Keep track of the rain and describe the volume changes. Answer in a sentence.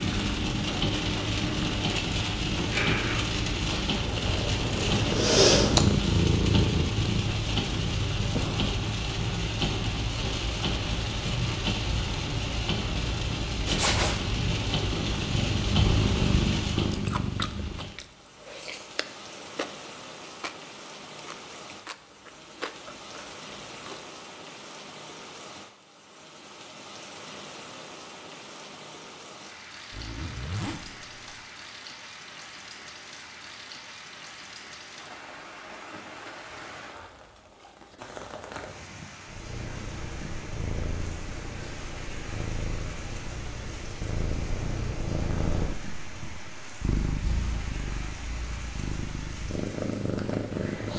The volume of the rain goes down.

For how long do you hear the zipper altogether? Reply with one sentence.
You can hear the zipper for 2 seconds altogether.